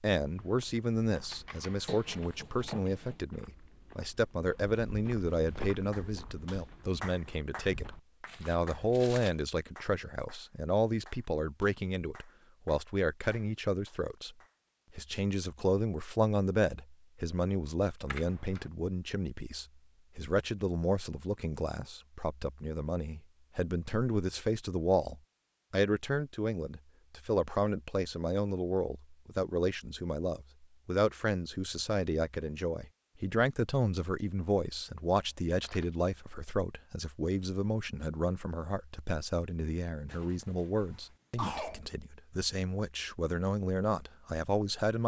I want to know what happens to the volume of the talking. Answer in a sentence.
The volume of the talking stays about the same.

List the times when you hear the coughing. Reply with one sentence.
You can hear the coughing from 1.9 to 3.2 s and from 40.0 to 41.8 s.